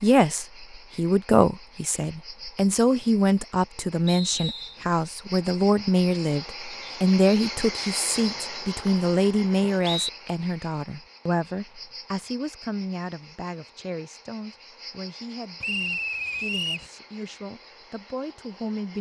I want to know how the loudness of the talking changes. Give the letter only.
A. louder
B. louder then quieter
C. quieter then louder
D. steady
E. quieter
E.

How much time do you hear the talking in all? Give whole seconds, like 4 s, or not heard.
19 s.